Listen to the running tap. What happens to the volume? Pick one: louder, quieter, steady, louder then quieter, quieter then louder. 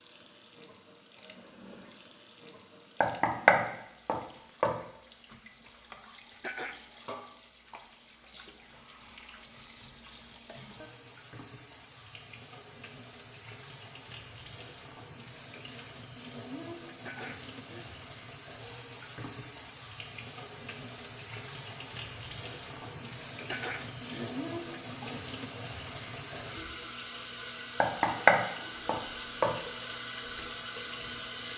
louder.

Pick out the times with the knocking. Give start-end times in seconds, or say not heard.
3.0-4.8, 27.8-29.6.